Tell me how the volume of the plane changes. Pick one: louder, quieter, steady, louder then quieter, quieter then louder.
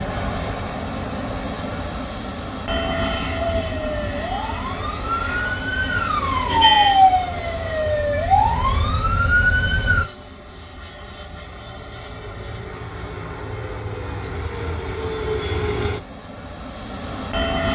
quieter then louder.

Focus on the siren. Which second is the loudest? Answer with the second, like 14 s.
7 s.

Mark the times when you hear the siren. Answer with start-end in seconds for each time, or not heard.
3.6-10.1.